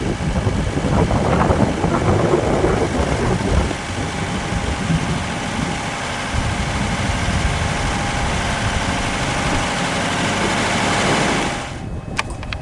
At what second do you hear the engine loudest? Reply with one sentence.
The volume of the engine peaks at 11 seconds.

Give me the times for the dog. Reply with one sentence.
You can't hear the dog here.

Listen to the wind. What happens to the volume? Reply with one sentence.
The volume of the wind goes down.